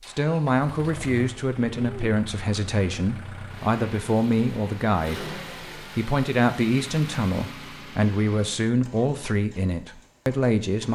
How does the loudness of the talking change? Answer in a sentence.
The loudness of the talking stays about the same.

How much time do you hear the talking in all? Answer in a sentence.
You can hear the talking for 11 seconds altogether.